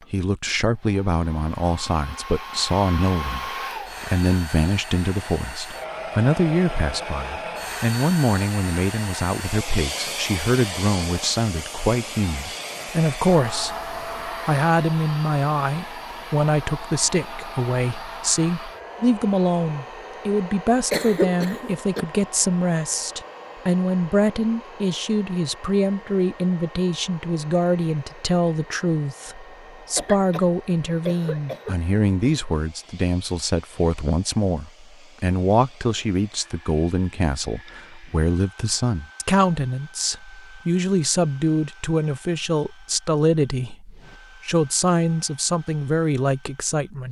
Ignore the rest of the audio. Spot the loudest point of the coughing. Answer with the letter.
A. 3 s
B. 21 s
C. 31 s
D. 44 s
B.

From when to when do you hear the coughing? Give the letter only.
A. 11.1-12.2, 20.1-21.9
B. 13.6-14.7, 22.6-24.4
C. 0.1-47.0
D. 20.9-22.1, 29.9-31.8
D.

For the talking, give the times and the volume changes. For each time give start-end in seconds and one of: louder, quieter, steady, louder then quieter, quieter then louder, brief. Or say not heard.
0.1-47.0 steady.